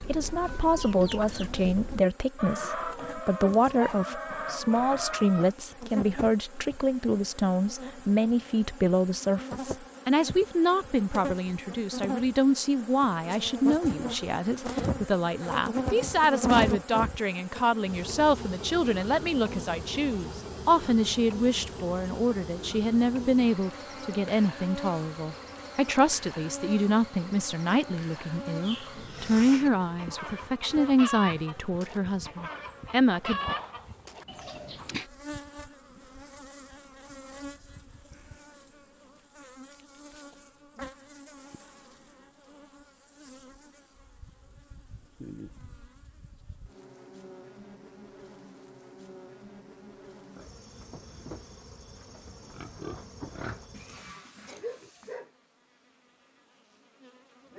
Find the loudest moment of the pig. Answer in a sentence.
The loudest moment of the pig is at 53 seconds.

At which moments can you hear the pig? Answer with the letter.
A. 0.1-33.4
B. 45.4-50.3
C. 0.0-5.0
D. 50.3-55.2
D.